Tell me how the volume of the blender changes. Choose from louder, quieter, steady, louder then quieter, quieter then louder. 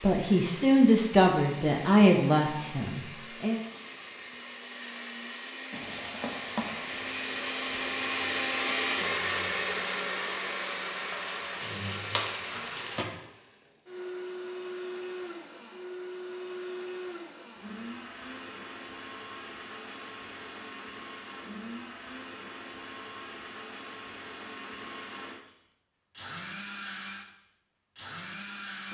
louder then quieter.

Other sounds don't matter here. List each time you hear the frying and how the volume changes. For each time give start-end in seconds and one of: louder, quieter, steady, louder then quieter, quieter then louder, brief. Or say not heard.
5.7-13.1 quieter then louder.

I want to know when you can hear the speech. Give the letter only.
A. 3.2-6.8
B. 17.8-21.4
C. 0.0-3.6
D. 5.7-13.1
C.